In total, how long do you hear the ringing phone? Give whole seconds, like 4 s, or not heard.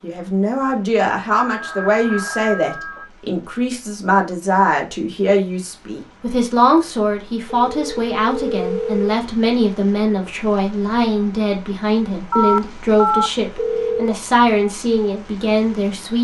5 s.